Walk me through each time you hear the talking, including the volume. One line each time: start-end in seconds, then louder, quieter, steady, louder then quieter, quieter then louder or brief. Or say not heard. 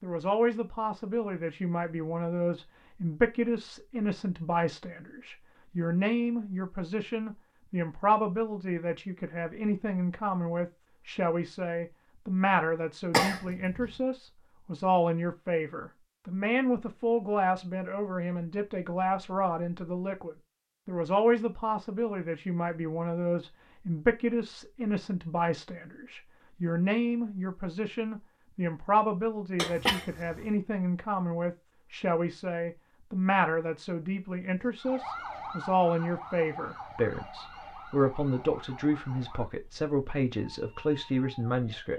0.0-41.9 steady.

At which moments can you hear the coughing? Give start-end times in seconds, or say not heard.
13.1-13.9, 29.6-30.1.